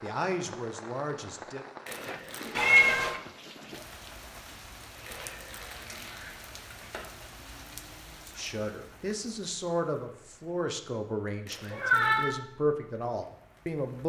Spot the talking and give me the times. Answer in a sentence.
You can hear the talking from 0.0 to 1.6 s and from 8.2 to 14.0 s.